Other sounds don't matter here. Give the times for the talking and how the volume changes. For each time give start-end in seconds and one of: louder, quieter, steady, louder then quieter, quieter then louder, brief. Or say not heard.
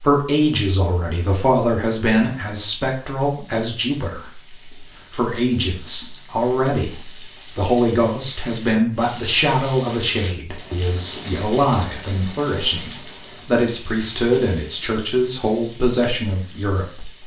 0.0-17.2 steady.